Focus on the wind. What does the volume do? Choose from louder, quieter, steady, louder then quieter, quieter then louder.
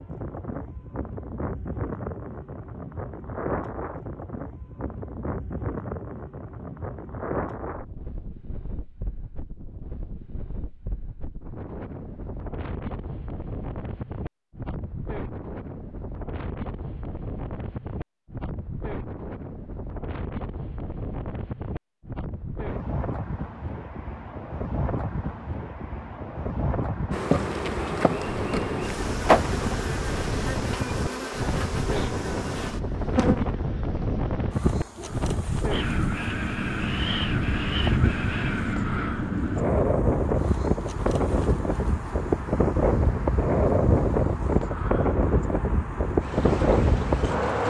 louder.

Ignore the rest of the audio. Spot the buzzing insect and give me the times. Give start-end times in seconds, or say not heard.
27.1-47.6.